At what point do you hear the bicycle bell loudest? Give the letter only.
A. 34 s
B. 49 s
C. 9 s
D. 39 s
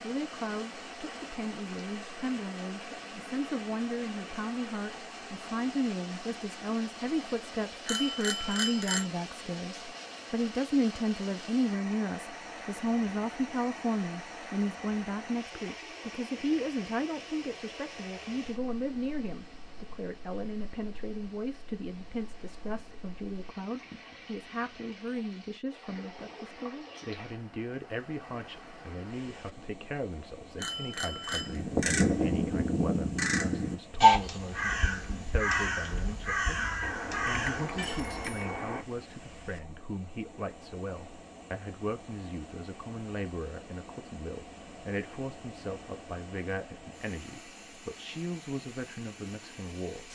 C.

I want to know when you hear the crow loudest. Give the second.
34 s.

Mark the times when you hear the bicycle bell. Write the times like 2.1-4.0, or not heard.
7.8-9.1, 30.6-31.6, 36.8-38.9.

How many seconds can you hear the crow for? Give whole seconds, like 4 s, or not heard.
7 s.